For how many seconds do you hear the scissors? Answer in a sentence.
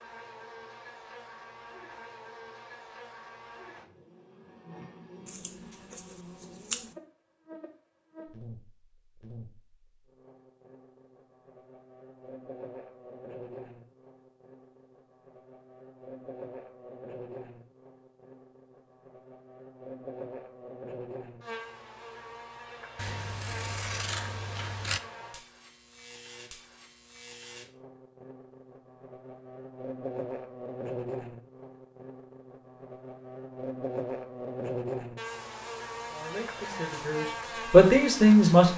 You can hear the scissors for 4 seconds altogether.